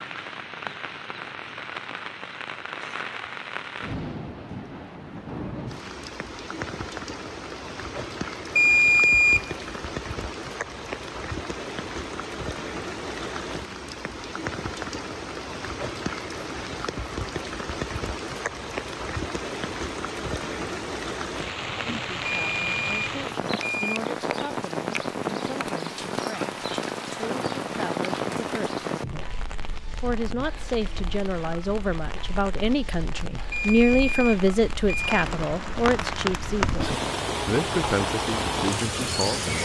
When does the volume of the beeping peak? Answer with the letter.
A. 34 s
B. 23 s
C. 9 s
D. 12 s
C.